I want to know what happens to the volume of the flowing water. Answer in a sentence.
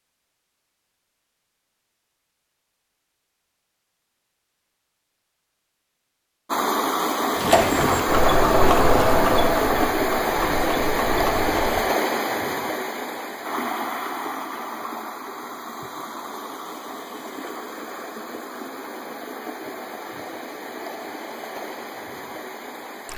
The loudness of the flowing water goes down.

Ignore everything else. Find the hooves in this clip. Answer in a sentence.
The hooves can be heard from 7.3 to 11.8 s.